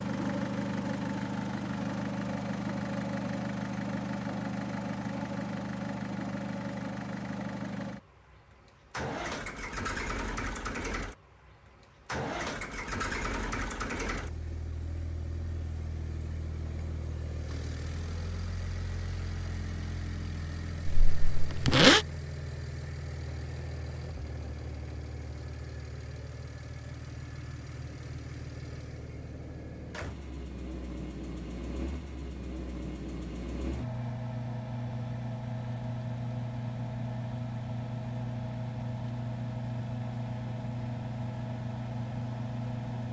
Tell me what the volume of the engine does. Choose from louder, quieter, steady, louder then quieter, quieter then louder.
quieter then louder.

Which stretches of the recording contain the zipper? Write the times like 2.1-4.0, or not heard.
20.9-22.1.